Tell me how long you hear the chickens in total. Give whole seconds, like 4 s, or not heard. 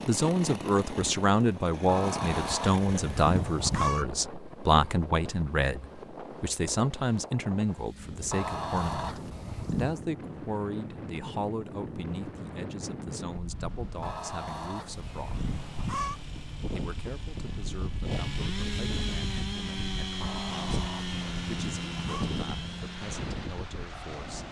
8 s.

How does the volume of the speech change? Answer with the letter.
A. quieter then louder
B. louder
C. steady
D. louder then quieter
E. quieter
E.